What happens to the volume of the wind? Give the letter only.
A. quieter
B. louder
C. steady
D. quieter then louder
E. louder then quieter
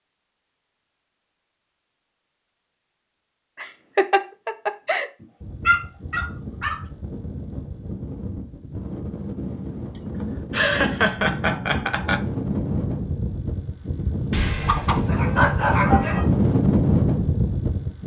B.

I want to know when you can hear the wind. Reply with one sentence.
The wind can be heard from 5.4 to 18.0 s.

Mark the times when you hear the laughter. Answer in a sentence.
The laughter can be heard from 3.5 to 5.1 s and from 10.2 to 12.2 s.